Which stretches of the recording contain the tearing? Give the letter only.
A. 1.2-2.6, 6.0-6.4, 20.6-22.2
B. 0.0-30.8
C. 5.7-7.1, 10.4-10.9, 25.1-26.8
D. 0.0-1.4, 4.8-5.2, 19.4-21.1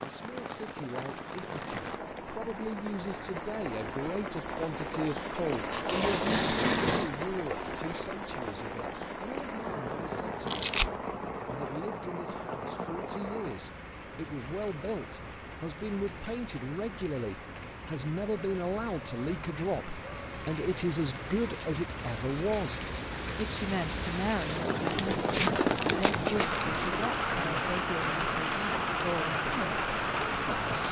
C.